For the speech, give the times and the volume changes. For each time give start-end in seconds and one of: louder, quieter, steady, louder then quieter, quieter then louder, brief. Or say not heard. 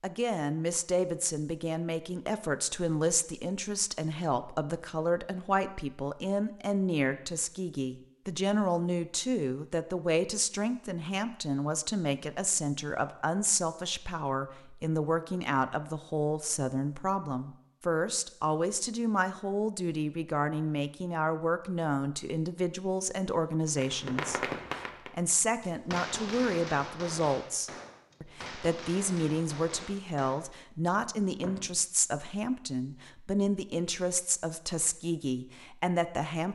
0.0-36.5 steady.